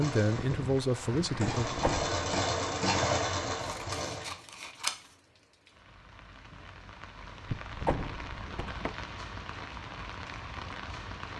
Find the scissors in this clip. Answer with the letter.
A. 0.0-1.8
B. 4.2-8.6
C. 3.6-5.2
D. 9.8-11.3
C.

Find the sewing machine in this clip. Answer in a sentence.
You can hear the sewing machine from 0.0 to 4.3 s.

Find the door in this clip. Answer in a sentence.
The door can be heard from 1.6 to 2.2 s and from 7.5 to 8.9 s.